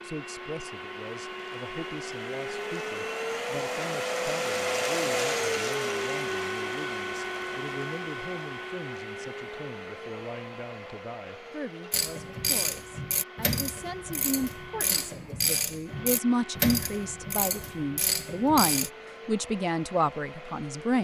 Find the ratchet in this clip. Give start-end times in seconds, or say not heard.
11.9-18.9.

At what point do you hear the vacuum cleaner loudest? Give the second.
5 s.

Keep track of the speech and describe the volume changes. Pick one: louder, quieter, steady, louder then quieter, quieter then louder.
louder.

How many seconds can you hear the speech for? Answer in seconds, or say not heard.
21 s.